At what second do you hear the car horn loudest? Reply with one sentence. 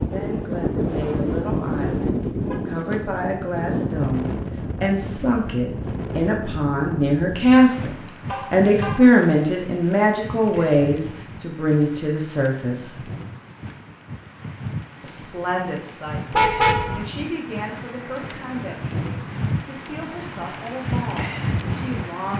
The volume of the car horn peaks at 17 seconds.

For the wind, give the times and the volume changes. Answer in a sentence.
The wind can be heard from 0.0 to 22.3 s, getting quieter then louder.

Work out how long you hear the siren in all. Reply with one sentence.
The siren can't be heard in this clip.